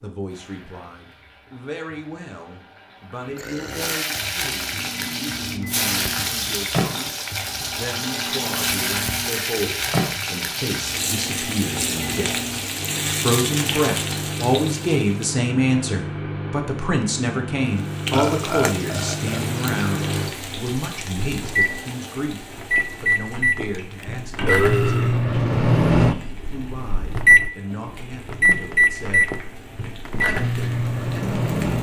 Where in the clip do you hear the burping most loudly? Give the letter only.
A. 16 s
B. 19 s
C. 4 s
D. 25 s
D.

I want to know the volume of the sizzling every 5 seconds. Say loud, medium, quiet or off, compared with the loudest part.
medium, loud, loud, medium, medium, quiet, quiet.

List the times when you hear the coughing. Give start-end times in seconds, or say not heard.
not heard.